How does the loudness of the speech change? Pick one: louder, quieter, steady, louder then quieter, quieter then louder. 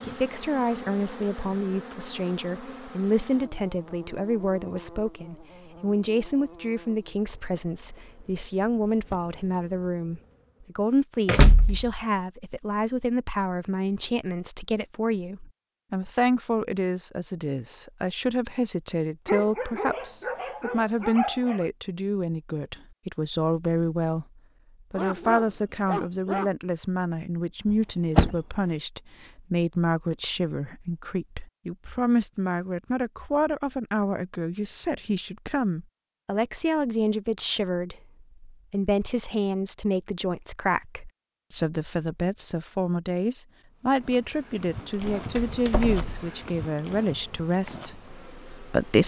steady.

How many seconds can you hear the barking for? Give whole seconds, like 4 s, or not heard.
4 s.